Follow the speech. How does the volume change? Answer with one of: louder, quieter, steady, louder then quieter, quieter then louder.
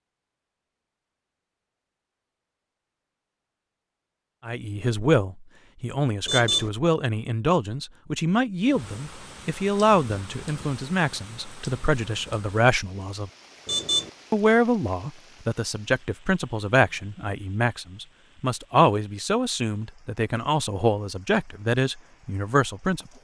steady.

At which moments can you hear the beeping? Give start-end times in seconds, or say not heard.
6.2-6.7, 13.7-14.1.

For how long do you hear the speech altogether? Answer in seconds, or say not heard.
18 s.